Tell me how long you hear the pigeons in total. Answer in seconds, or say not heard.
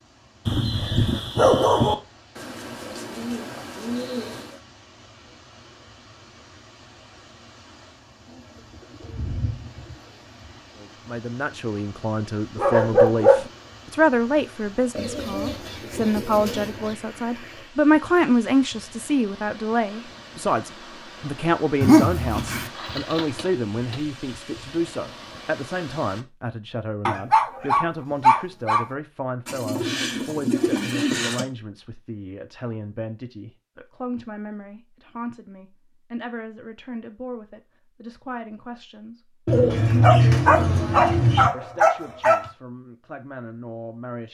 12 s.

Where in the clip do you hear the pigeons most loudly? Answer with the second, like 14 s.
40 s.